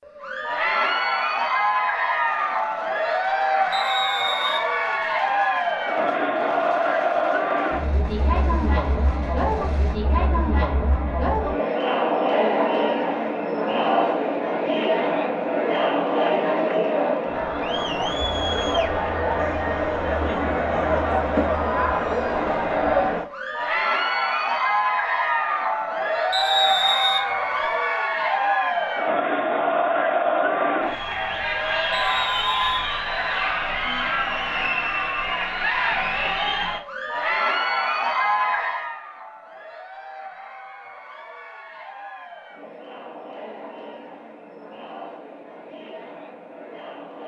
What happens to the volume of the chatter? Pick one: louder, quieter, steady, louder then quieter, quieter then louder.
quieter.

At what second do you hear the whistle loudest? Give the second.
27 s.